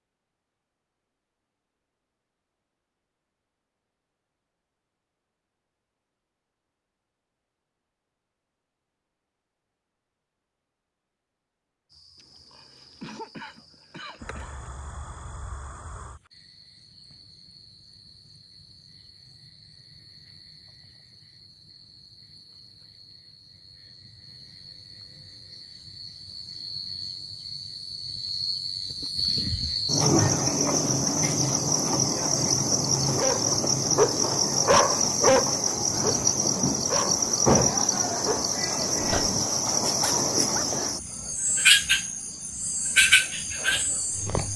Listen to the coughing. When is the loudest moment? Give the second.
13 s.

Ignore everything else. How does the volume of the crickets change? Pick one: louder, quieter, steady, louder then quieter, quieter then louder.
louder.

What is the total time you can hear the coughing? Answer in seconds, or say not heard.
2 s.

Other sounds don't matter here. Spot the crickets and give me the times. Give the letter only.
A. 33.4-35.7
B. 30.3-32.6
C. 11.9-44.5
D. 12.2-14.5
C.